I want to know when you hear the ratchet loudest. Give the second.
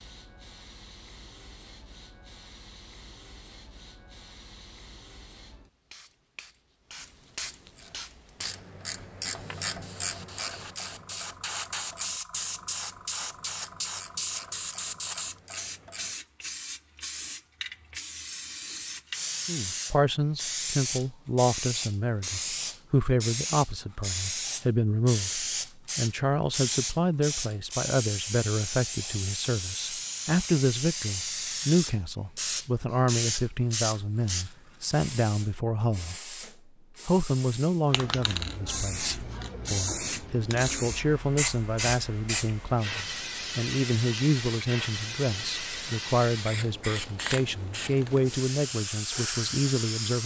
10 s.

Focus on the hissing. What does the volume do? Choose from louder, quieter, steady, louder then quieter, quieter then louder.
louder.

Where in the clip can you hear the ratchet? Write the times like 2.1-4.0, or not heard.
7.8-16.1.